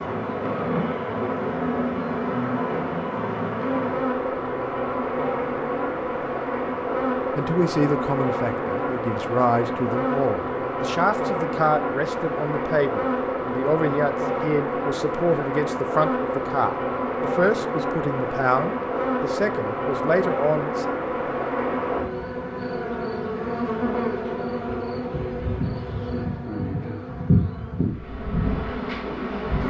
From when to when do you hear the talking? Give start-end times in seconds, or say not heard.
7.3-20.9.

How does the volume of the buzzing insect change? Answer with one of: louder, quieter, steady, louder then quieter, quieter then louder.
steady.